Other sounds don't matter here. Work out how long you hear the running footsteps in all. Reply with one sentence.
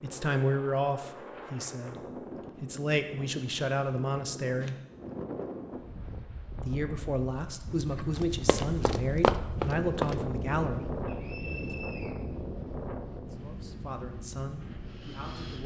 You can hear the running footsteps for 2 seconds altogether.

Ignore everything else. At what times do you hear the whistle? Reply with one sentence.
The whistle can be heard from 11.1 to 12.2 s.